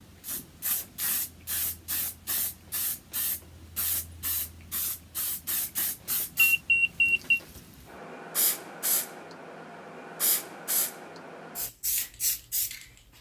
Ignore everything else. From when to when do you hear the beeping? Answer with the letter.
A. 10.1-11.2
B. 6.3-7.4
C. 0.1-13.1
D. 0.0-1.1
B.